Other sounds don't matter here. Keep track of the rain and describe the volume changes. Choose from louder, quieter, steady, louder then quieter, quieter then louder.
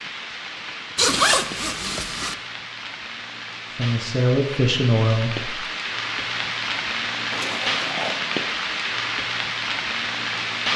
louder.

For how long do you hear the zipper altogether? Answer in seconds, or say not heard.
2 s.